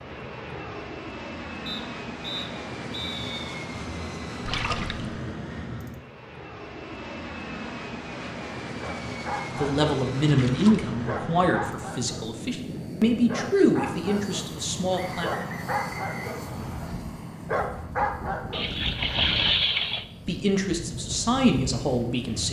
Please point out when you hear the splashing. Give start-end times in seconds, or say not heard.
4.5-5.2, 10.2-10.8, 18.5-20.1.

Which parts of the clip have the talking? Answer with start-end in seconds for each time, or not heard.
9.5-15.3, 20.2-22.4.